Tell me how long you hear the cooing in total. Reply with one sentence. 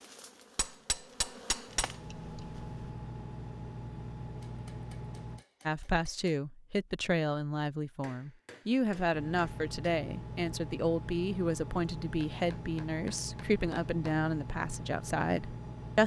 The cooing can't be heard in this clip.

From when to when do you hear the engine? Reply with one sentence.
You can hear the engine from 1.6 to 5.5 s and from 9.1 to 16.0 s.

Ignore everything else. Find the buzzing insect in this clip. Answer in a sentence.
You can hear the buzzing insect from 0.0 to 2.9 s.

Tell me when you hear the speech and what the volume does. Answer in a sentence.
You can hear the speech from 5.7 to 16.0 s, at a steady volume.